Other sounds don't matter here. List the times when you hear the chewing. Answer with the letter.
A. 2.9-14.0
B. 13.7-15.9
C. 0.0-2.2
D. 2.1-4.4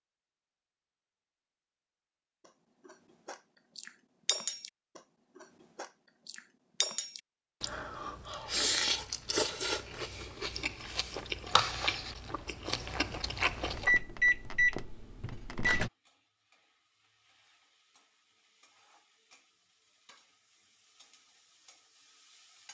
A.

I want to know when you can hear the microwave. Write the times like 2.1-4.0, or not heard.
13.7-15.9.